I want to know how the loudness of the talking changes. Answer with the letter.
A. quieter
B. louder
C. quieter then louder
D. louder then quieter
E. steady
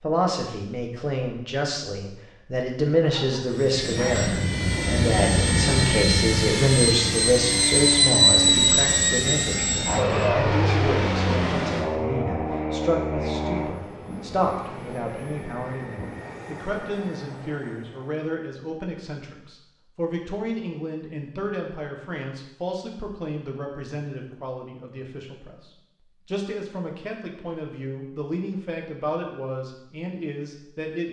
A.